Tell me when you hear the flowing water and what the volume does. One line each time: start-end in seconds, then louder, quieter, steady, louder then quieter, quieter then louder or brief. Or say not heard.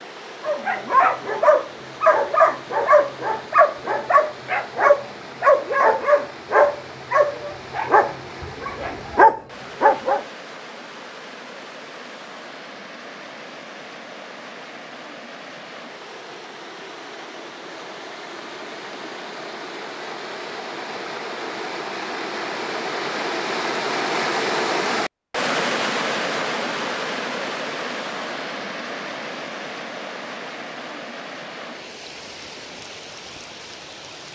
0.0-34.3 louder then quieter.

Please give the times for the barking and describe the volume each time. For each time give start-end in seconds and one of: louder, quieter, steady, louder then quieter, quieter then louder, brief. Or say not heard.
0.4-10.2 steady.